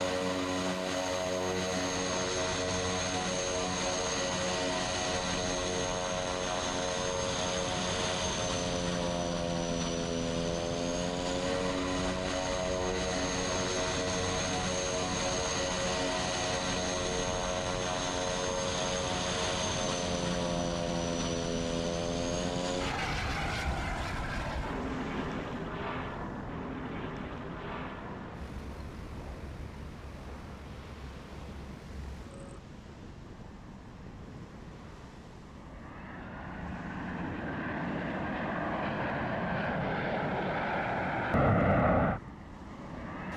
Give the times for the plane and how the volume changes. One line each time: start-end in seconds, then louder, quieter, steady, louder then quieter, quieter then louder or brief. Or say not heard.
0.0-43.3 quieter then louder.